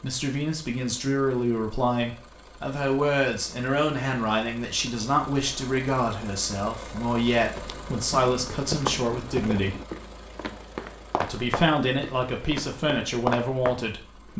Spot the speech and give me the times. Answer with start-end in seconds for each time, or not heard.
0.0-9.8, 11.2-14.3.